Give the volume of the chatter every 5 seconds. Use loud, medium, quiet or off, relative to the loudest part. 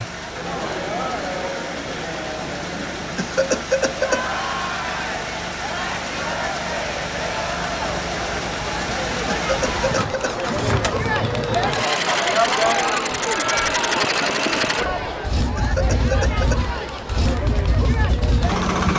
medium, medium, loud, medium.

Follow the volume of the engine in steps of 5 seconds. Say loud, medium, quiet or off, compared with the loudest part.
medium, loud, loud, loud.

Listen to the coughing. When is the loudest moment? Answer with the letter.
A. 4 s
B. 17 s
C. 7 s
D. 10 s
A.